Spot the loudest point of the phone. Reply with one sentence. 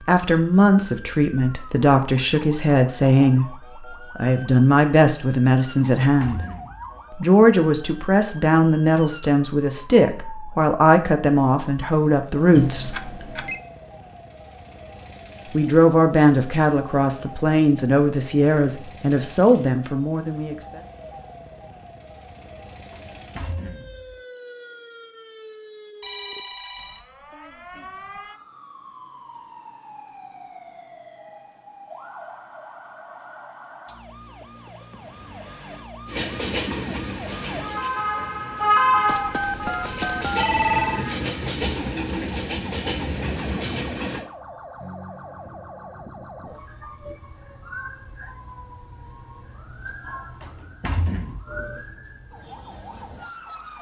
The volume of the phone peaks at 41 seconds.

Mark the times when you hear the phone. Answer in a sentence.
The phone can be heard from 12.6 to 13.6 s, from 26.0 to 27.1 s and from 39.0 to 41.0 s.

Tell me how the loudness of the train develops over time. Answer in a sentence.
The loudness of the train goes down, then up.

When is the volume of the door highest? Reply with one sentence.
The loudest moment of the door is at 51 seconds.